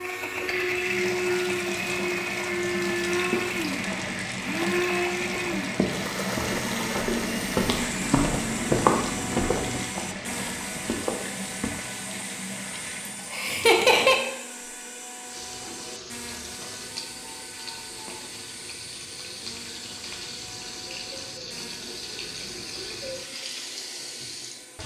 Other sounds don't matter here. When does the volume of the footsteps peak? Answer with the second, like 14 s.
9 s.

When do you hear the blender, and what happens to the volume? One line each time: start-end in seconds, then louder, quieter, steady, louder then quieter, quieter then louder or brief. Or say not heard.
0.0-24.8 quieter.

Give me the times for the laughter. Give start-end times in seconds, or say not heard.
13.3-14.2.